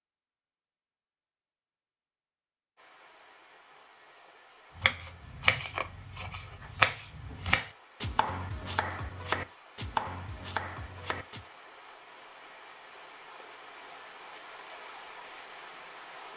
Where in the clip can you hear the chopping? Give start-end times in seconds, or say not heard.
4.8-11.4.